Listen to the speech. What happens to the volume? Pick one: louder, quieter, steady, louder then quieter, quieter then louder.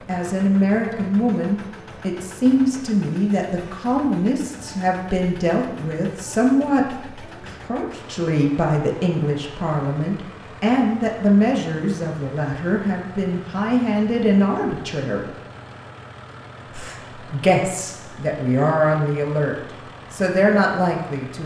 steady.